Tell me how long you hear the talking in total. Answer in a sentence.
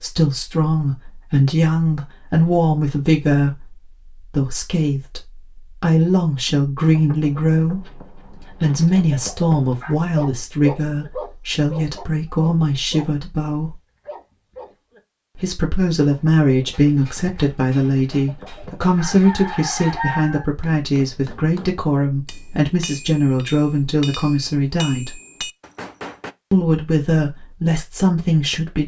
You can hear the talking for 26 seconds altogether.